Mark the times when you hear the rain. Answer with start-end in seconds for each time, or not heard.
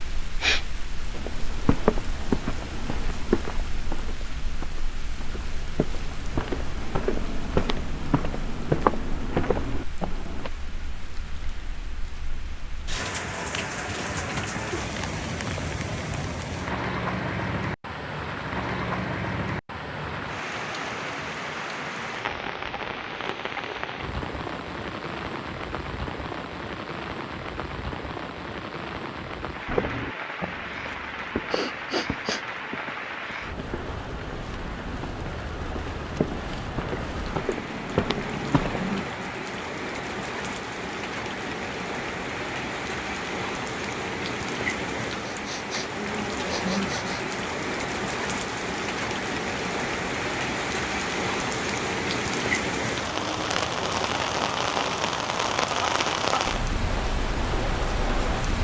0.0-58.5.